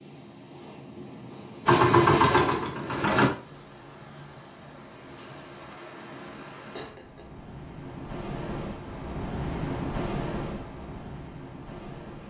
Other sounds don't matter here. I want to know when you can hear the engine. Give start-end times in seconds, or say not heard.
1.6-3.3.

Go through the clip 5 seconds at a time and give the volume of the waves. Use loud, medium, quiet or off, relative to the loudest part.
medium, loud, loud.